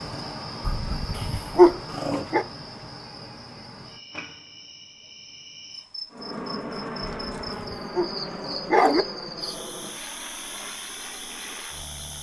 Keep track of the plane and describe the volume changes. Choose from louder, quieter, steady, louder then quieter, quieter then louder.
quieter.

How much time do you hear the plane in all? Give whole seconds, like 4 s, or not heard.
6 s.